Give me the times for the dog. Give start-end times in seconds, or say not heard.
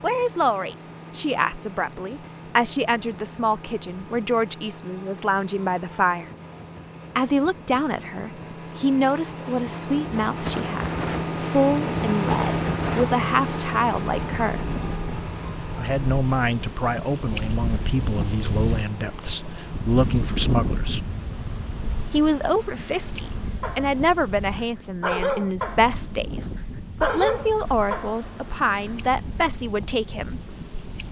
23.6-28.9.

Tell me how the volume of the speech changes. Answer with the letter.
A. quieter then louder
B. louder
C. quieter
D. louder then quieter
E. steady
E.